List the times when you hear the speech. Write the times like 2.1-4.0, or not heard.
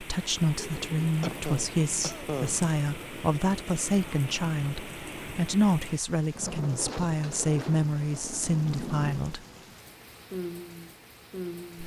0.0-9.4.